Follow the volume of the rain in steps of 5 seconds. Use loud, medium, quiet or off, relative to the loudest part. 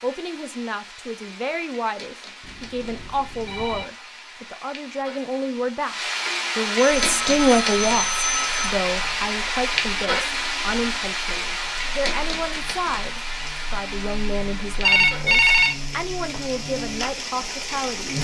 quiet, loud, loud, medium.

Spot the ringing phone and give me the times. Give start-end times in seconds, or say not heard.
2.4-3.9, 6.8-8.8, 14.8-15.8.